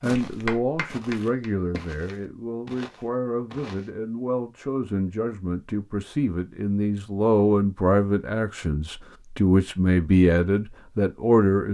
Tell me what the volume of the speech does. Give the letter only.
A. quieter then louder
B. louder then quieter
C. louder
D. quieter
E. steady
C.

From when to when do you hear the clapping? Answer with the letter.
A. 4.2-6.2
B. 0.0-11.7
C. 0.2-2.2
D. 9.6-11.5
C.